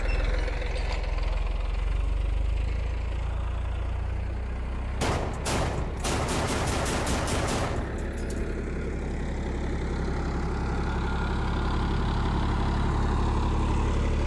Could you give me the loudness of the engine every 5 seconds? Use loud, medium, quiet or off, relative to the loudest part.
medium, medium, loud.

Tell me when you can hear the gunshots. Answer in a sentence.
You can hear the gunshots from 5.0 to 8.6 s.